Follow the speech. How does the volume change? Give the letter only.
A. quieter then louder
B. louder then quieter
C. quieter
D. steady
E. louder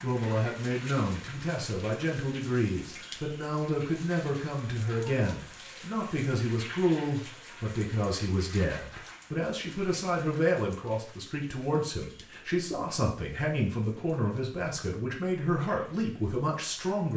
D.